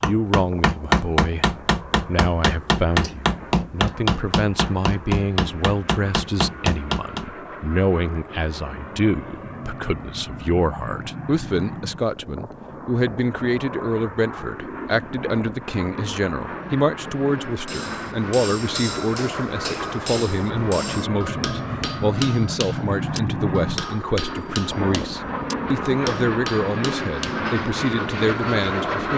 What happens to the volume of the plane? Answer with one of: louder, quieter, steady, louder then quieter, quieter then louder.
louder.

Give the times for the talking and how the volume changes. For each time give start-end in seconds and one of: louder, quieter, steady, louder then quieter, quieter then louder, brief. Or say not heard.
0.0-29.1 steady.